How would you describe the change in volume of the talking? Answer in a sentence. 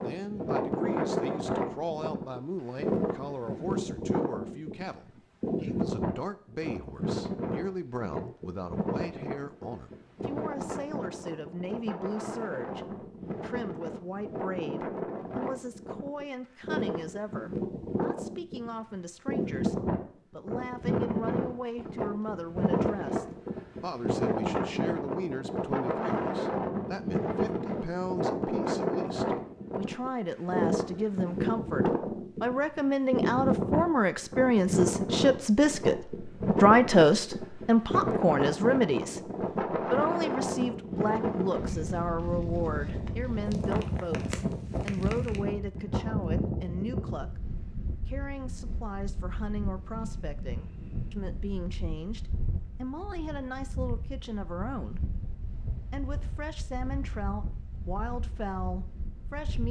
The volume of the talking goes up, then down.